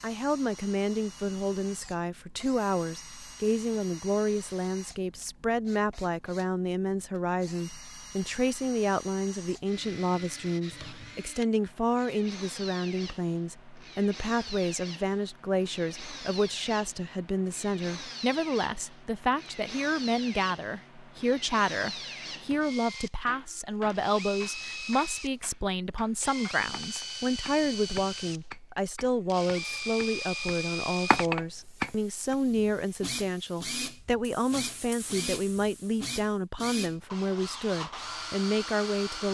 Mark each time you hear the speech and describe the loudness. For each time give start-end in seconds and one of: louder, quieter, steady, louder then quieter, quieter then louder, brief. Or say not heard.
0.0-39.3 steady.